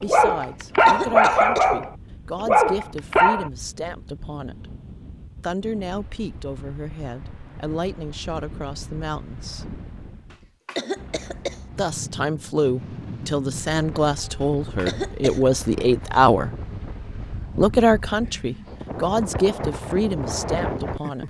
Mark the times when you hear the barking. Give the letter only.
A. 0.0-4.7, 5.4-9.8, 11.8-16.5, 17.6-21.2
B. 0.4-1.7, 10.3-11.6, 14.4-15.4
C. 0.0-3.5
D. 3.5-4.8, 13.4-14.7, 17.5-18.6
C.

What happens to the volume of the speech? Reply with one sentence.
The volume of the speech goes up.